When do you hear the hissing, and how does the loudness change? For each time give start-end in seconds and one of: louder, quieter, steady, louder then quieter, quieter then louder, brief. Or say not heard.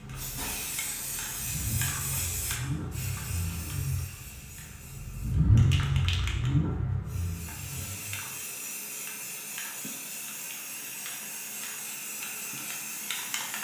0.0-13.5 quieter then louder.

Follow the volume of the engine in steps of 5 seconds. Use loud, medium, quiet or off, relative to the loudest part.
medium, loud, off.